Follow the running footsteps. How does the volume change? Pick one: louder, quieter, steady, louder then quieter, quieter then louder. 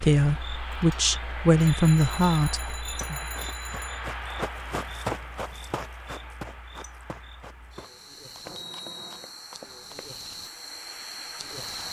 louder then quieter.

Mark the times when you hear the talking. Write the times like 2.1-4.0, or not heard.
0.0-3.2.